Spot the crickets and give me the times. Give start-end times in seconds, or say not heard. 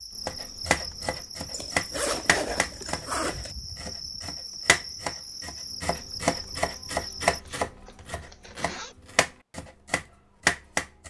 0.0-7.4.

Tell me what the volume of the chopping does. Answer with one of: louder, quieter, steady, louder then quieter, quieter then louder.
quieter then louder.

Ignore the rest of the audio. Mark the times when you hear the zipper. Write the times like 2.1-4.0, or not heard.
1.5-3.5, 7.0-8.9.